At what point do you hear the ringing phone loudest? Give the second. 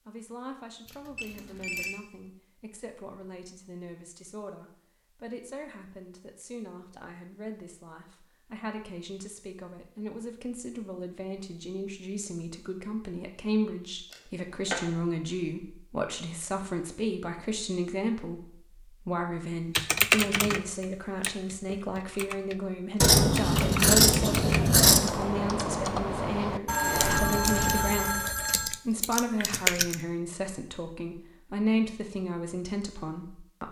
27 s.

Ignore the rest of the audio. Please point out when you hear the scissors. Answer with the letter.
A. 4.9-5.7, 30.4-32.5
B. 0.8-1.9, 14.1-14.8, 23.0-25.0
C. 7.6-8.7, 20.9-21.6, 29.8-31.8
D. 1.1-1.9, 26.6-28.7
B.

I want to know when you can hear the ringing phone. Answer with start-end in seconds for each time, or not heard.
1.1-1.9, 26.6-28.7.